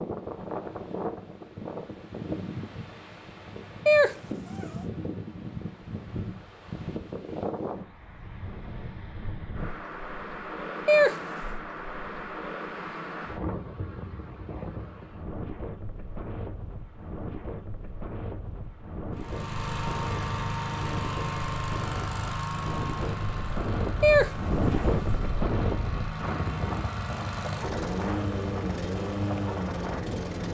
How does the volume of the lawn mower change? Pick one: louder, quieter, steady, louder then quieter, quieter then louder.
quieter then louder.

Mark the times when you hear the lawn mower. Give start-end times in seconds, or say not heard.
19.1-30.4.